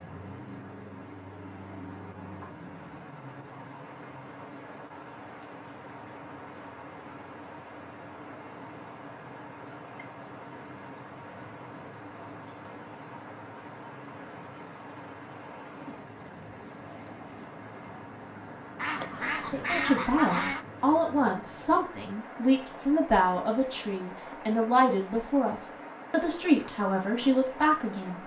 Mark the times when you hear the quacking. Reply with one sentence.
The quacking can be heard from 18.8 to 20.6 s.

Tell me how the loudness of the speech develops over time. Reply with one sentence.
The volume of the speech stays about the same.